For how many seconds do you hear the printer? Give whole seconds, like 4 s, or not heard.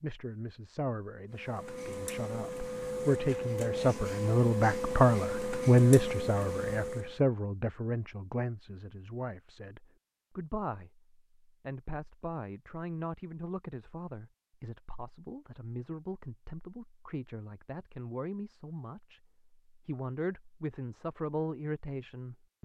6 s.